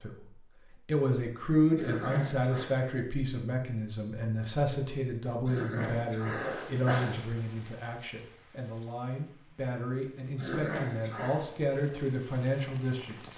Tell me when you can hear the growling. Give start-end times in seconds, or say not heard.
1.8-2.7, 5.5-7.2, 10.3-11.4.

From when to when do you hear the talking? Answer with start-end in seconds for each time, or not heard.
0.0-13.3.